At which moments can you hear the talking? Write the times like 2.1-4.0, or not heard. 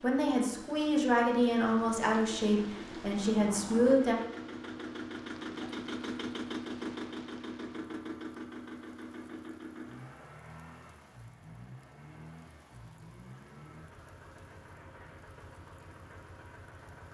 0.0-4.2.